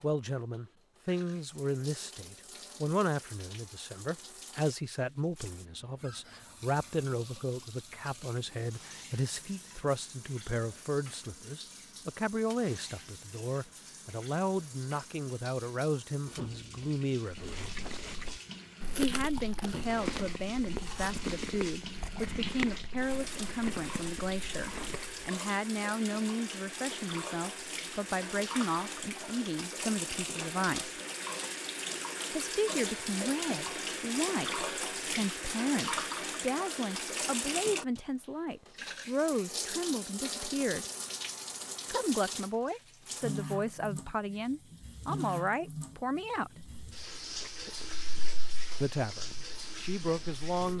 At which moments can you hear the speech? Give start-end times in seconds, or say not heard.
0.0-17.8, 18.9-31.0, 32.3-40.9, 41.9-46.6, 48.8-50.7.